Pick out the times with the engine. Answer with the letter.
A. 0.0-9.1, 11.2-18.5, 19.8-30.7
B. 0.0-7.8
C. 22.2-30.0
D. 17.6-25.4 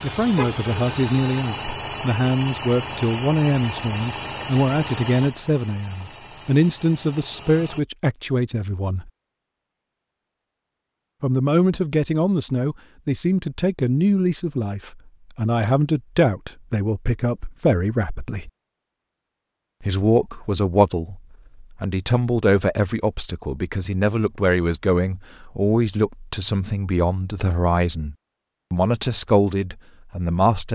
B.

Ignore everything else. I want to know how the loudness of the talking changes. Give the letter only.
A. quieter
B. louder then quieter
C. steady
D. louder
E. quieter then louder
C.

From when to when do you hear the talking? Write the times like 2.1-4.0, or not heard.
0.0-9.1, 11.2-18.5, 19.8-30.7.